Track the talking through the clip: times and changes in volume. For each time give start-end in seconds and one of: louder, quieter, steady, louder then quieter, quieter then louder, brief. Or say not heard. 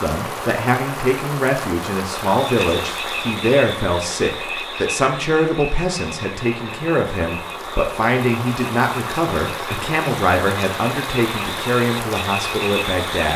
0.0-13.3 steady.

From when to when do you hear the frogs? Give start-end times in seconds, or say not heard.
2.2-13.3.